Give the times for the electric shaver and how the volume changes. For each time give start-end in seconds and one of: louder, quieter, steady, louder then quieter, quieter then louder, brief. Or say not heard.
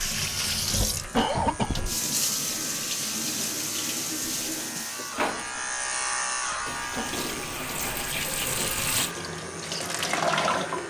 0.0-10.8 louder then quieter.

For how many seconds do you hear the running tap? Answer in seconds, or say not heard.
11 s.